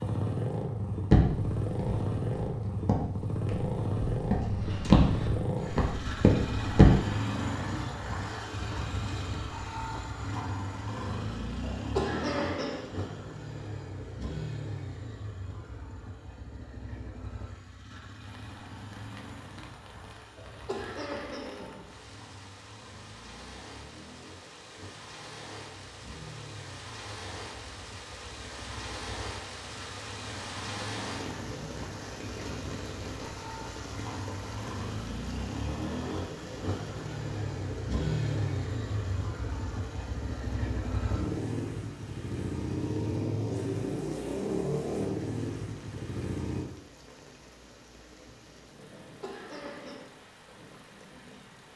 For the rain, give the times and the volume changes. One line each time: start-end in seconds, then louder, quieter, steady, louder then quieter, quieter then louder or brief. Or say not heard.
18.1-51.7 louder then quieter.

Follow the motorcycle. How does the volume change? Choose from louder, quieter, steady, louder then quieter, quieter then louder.
quieter then louder.